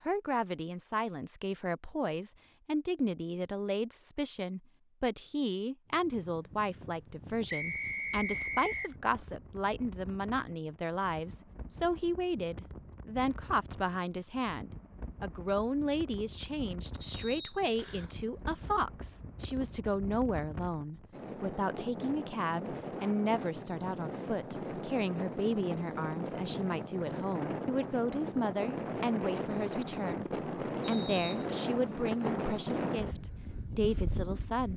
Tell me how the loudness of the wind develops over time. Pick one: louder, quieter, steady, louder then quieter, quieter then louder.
louder.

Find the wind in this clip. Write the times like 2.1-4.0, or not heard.
5.8-34.7.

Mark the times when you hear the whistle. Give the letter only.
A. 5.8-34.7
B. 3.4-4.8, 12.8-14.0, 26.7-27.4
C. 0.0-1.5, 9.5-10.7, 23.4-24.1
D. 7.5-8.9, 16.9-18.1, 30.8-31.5
D.